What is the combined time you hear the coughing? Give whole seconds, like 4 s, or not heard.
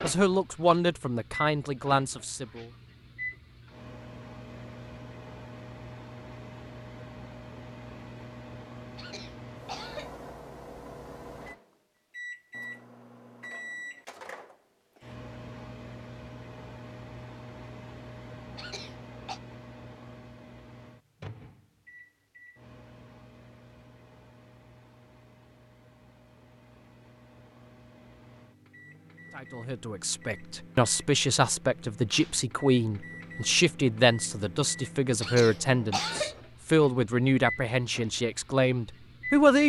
3 s.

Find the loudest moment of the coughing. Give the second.
36 s.